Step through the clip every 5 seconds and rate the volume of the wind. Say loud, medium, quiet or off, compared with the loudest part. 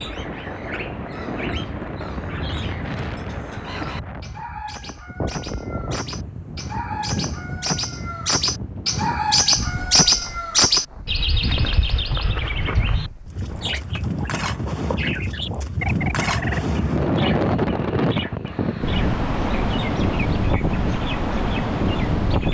medium, medium, medium, loud, loud.